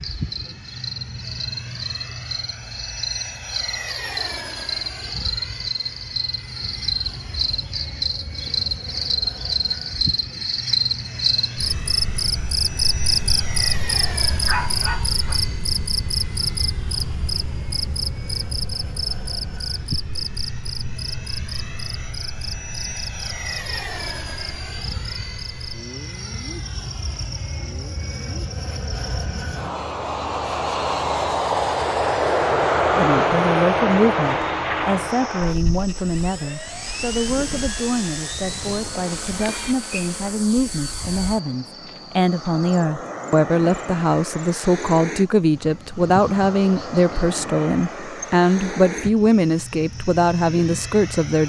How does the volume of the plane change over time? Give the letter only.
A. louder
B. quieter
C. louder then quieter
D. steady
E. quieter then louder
C.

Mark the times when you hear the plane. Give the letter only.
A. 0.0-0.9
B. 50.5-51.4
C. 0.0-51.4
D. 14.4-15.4
C.